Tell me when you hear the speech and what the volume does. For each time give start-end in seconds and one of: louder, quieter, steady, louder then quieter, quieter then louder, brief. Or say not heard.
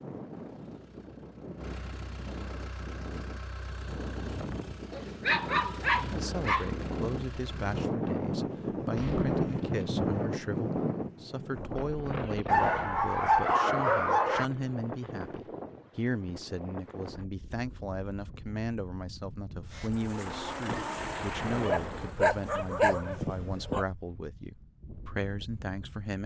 6.0-26.2 steady.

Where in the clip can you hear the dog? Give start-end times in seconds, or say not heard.
4.9-6.7, 12.4-14.4, 21.6-23.9.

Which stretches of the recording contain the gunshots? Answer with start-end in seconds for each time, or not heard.
8.9-9.8, 20.2-22.1.